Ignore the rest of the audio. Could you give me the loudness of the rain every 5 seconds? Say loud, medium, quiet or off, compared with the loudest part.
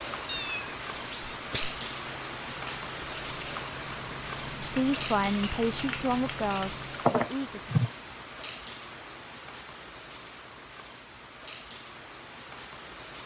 loud, loud, medium.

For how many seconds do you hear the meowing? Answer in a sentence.
You can hear the meowing for 2 seconds altogether.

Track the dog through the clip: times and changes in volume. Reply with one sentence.
You can't hear the dog here.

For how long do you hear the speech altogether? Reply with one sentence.
The speech can be heard for 3 seconds in total.